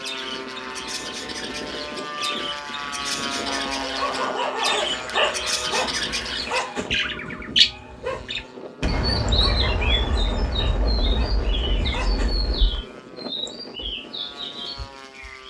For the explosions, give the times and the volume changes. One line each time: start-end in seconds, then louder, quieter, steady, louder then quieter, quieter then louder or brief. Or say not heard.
8.8-12.8 quieter.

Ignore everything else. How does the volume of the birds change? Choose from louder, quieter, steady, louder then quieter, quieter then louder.
louder then quieter.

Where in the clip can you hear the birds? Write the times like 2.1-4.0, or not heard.
0.0-15.4.